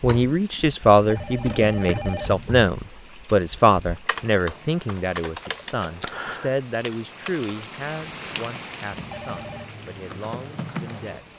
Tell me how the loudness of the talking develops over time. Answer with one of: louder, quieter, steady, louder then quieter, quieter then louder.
quieter.